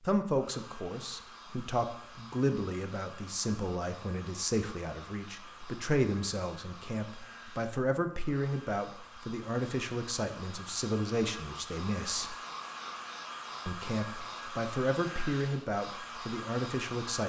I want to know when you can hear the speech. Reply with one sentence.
You can hear the speech from 0.1 to 12.3 s and from 13.7 to 17.2 s.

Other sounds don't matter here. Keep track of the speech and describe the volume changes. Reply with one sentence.
The volume of the speech stays about the same.